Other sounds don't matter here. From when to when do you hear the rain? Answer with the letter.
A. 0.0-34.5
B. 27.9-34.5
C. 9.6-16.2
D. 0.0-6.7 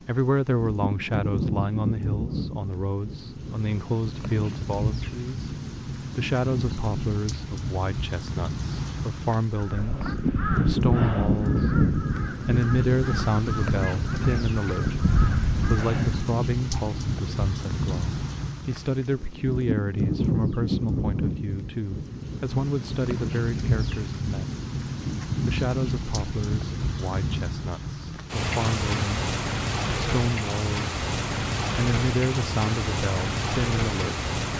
A.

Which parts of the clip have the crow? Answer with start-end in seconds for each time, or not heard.
9.6-16.2.